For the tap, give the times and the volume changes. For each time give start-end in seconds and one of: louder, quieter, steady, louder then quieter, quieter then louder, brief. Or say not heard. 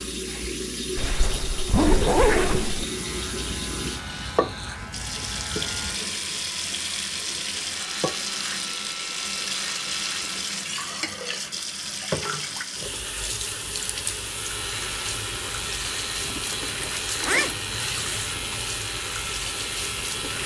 0.0-20.4 steady.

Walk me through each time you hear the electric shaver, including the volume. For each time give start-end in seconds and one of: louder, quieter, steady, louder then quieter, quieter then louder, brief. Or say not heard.
2.7-10.7 steady
14.2-20.4 steady.